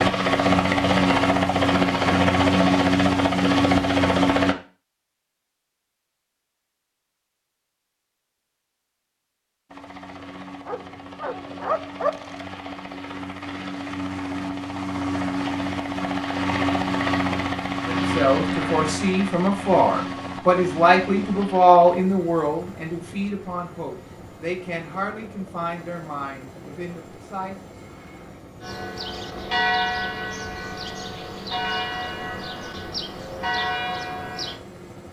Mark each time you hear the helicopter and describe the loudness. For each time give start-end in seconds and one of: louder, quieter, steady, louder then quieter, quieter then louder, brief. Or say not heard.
0.0-4.5 steady
9.7-35.0 louder then quieter.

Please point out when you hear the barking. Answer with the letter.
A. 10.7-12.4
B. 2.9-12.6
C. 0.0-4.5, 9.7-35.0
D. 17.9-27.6
A.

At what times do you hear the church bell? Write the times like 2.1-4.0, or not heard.
28.6-34.6.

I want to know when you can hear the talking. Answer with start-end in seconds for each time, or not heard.
17.9-27.6.